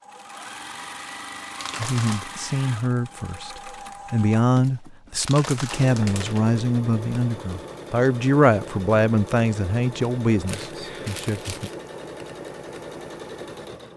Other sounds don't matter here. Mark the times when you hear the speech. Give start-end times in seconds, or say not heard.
1.8-11.7.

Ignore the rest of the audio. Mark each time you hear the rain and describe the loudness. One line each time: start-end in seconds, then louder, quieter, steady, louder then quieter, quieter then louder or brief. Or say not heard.
not heard.